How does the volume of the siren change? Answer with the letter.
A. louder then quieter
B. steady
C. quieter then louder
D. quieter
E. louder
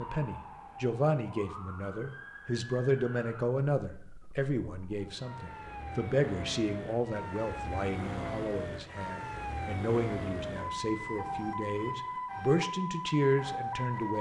E.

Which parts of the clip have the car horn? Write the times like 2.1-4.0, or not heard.
not heard.